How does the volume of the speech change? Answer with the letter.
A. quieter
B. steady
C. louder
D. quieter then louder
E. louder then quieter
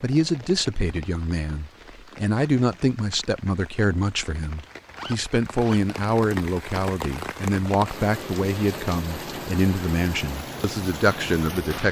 B.